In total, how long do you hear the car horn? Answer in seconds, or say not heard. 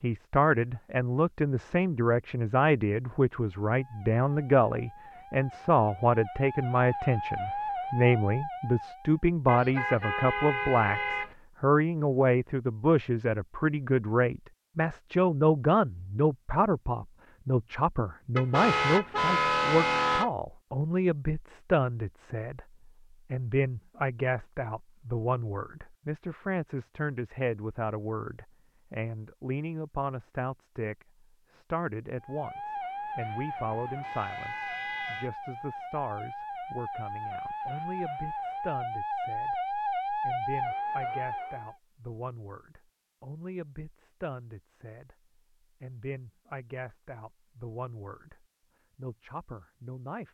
5 s.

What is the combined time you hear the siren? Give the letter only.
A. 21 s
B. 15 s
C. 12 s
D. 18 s
B.